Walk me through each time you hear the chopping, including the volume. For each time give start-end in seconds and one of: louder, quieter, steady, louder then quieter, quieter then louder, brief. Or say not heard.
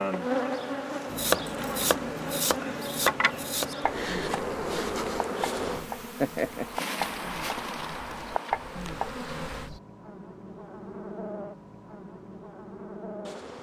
1.1-9.8 quieter then louder.